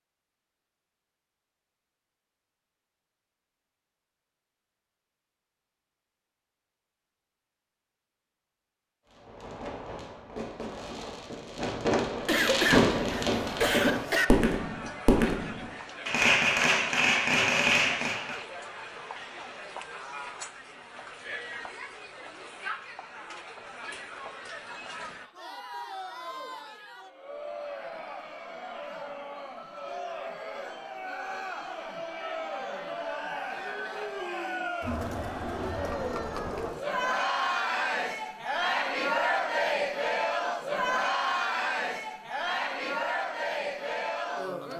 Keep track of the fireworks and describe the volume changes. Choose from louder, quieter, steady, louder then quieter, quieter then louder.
louder.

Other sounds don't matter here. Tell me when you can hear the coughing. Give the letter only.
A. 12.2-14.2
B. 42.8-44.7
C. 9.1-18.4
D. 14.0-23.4
A.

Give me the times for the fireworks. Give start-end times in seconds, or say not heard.
9.1-18.4.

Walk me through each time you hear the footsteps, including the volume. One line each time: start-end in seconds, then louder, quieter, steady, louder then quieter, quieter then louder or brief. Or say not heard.
not heard.